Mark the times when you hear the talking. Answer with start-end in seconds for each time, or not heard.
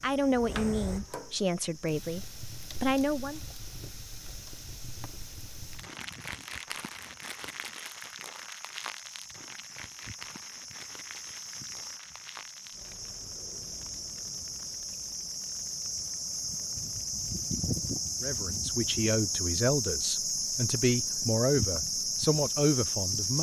0.0-3.4, 18.2-23.3.